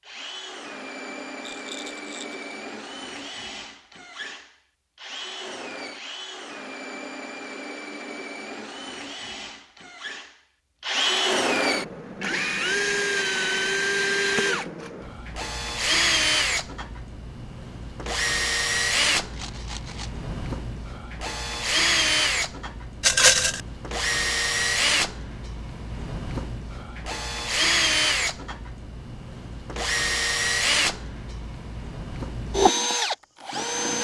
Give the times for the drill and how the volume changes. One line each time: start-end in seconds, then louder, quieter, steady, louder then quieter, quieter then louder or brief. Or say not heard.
0.0-33.9 louder.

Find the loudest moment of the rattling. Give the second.
23 s.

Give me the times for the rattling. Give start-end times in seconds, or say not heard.
1.4-2.4, 19.3-20.1, 23.0-23.6.